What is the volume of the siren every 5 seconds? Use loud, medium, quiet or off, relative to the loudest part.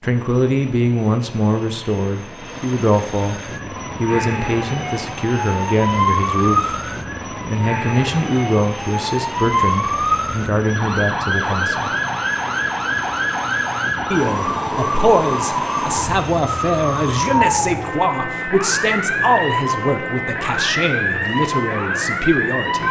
medium, loud, loud, loud, loud.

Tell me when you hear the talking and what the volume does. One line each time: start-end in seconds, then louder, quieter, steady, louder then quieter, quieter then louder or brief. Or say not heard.
0.0-11.9 steady
14.1-22.8 steady.